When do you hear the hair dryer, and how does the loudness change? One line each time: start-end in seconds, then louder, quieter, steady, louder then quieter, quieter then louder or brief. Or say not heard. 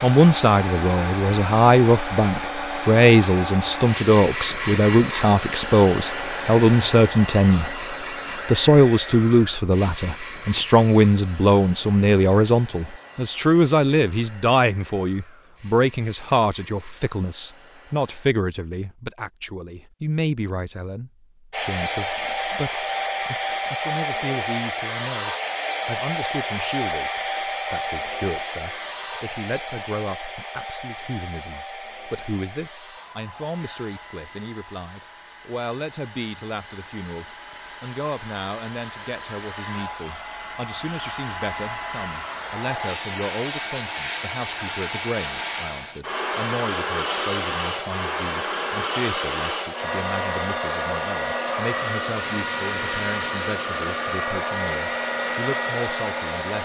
0.0-18.3 quieter
21.5-56.6 quieter then louder.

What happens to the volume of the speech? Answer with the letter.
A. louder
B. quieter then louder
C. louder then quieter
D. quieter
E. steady
D.